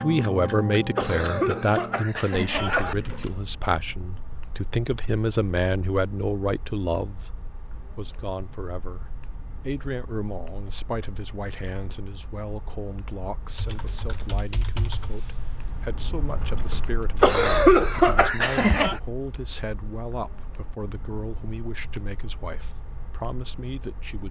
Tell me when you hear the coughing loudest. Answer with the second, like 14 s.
18 s.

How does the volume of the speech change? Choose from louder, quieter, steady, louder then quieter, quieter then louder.
quieter.